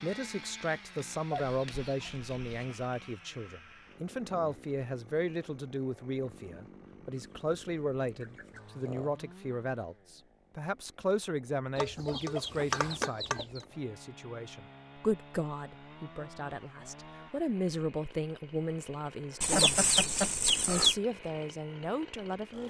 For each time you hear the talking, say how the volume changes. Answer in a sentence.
The talking can be heard from 0.0 to 22.6 s, at a steady volume.